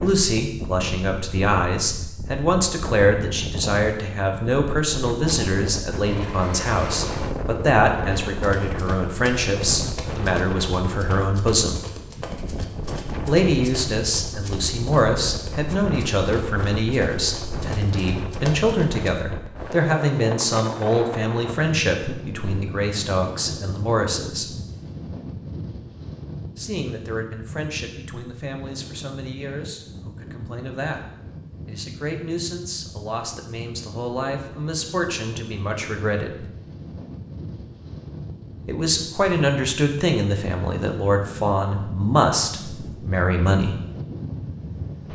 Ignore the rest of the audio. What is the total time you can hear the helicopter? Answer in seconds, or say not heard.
3 s.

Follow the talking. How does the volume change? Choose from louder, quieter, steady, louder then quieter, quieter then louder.
quieter then louder.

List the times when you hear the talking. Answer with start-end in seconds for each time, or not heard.
0.0-11.8, 13.2-24.5, 26.6-31.1, 31.6-36.5, 38.6-43.8.